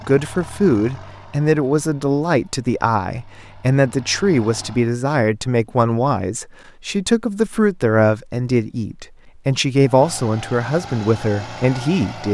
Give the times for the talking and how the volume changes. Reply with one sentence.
The talking can be heard from 0.1 to 12.2 s, at a steady volume.